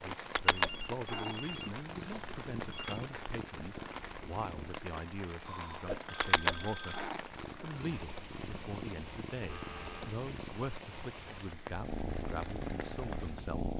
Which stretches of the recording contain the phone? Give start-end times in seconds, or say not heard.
0.5-3.0, 5.5-7.1, 9.4-10.2.